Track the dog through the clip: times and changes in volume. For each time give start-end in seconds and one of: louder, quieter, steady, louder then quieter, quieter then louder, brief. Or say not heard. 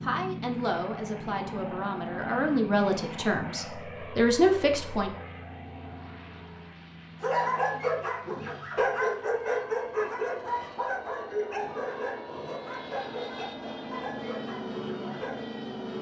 7.2-15.4 quieter.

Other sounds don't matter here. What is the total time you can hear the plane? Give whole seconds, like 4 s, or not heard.
16 s.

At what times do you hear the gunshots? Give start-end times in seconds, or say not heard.
not heard.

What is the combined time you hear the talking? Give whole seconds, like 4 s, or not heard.
5 s.